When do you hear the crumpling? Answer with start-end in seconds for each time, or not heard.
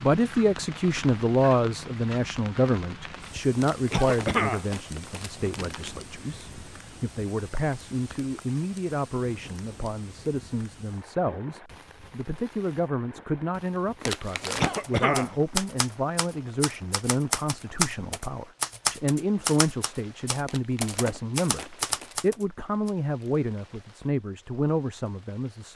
3.5-6.0, 14.0-14.8, 20.4-22.1.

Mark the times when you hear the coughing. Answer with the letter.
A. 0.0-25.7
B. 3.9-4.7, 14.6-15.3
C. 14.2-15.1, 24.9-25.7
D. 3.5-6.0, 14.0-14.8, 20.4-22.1
B.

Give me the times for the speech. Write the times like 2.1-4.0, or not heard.
0.0-25.7.